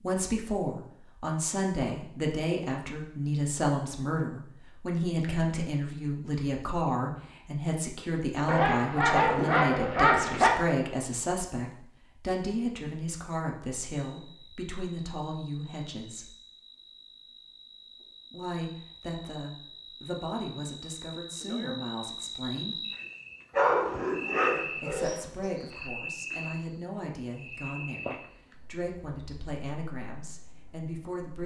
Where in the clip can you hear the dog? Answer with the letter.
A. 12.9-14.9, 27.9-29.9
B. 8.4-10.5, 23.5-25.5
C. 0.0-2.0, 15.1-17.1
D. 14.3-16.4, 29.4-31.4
B.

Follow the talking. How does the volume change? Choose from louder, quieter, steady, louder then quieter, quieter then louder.
quieter.